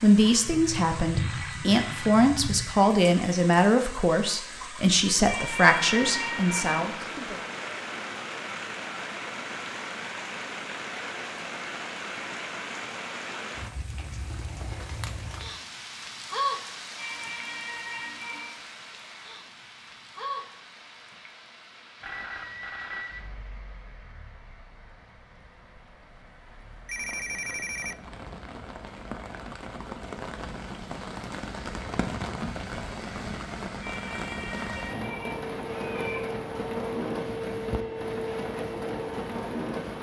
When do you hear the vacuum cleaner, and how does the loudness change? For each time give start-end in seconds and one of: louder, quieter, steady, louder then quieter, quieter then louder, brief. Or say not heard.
35.2-39.9 steady.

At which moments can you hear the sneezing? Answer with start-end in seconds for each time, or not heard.
5.2-7.0, 16.9-18.6, 33.8-36.3.